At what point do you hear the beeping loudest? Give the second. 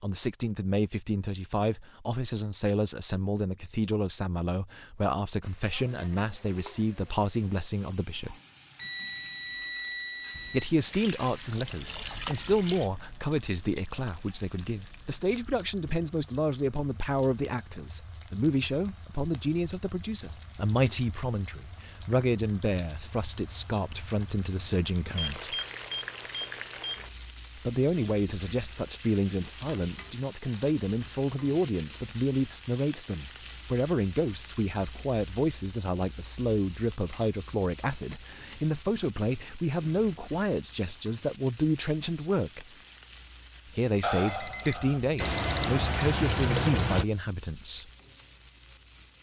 44 s.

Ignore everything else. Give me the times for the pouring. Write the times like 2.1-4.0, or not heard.
10.3-12.9, 45.2-47.0.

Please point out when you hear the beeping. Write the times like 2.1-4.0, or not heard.
8.8-10.7, 25.1-27.1, 44.0-45.8.